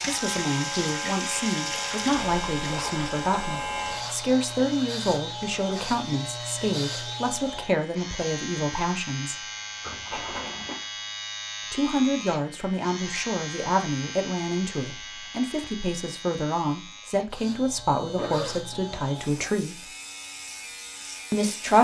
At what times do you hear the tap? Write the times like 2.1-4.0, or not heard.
0.0-7.3.